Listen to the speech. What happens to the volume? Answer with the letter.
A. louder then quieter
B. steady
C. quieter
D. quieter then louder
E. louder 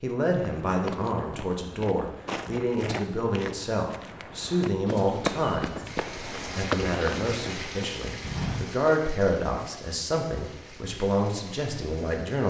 B.